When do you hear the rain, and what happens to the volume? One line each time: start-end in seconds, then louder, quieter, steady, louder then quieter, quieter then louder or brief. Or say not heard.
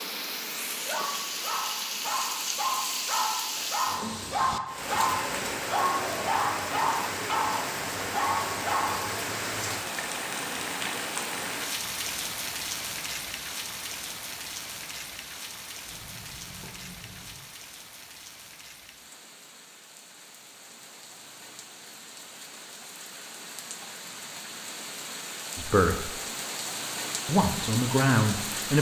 0.0-28.7 quieter then louder.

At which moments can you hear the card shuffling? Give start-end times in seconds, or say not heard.
15.8-17.4.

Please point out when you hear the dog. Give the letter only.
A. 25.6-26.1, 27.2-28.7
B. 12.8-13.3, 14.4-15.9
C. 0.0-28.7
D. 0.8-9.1
D.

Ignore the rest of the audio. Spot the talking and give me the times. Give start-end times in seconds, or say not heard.
25.6-26.1, 27.2-28.7.